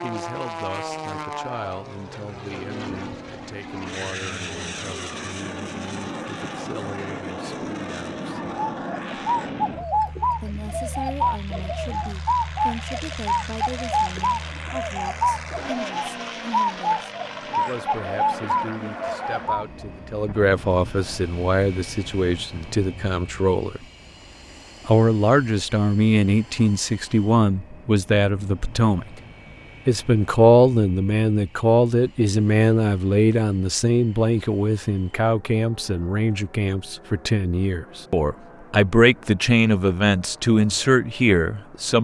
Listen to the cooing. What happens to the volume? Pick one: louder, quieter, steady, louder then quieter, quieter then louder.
steady.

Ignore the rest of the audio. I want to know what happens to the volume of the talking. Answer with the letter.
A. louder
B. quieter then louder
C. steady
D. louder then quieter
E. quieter
A.